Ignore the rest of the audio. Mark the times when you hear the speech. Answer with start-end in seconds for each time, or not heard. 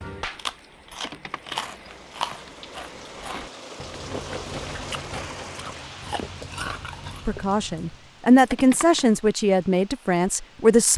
7.2-10.9.